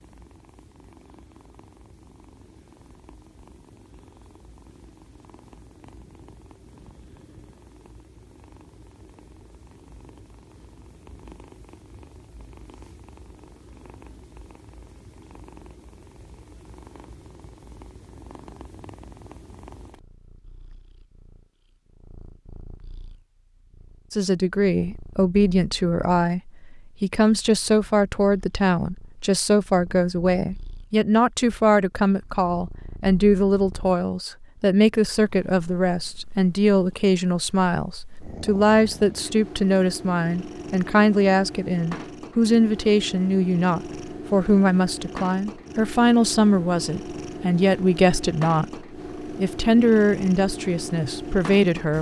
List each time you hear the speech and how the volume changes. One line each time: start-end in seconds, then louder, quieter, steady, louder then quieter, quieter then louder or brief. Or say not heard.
24.1-51.9 steady.